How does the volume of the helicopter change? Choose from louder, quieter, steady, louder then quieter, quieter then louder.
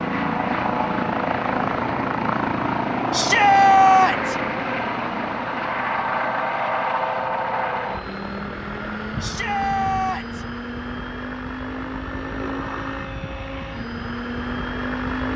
quieter.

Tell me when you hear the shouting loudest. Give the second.
4 s.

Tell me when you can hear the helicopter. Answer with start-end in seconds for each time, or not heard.
0.0-15.3.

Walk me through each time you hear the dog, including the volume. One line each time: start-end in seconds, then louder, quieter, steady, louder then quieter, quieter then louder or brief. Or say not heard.
not heard.